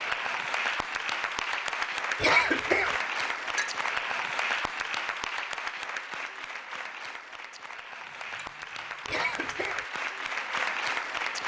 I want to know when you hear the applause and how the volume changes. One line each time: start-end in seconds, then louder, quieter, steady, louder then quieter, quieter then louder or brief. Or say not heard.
0.0-11.4 quieter then louder.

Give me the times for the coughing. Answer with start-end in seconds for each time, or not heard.
2.2-3.0, 9.1-9.8.